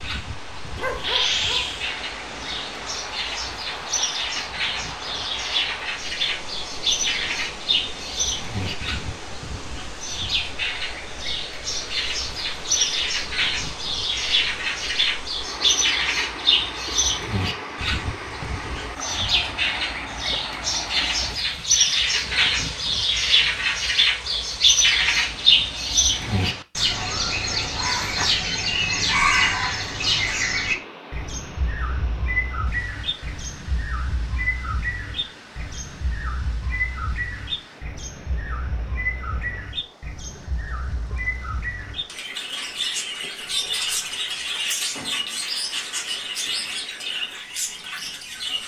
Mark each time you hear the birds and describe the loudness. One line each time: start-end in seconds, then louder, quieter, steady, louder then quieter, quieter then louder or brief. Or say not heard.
0.0-48.6 louder then quieter.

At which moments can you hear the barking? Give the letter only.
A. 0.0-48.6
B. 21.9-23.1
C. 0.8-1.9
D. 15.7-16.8
C.